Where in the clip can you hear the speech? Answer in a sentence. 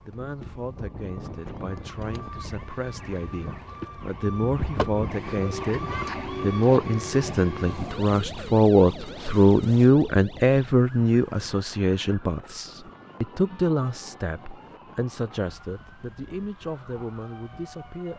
You can hear the speech from 0.1 to 5.8 s and from 6.4 to 18.1 s.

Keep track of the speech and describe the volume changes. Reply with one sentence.
The volume of the speech goes up, then down.